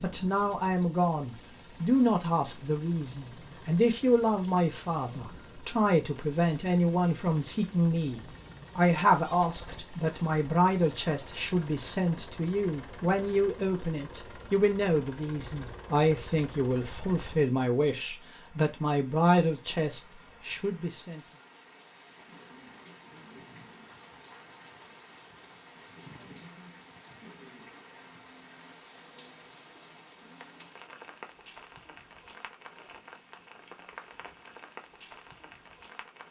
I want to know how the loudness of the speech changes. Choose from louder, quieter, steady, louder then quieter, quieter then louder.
steady.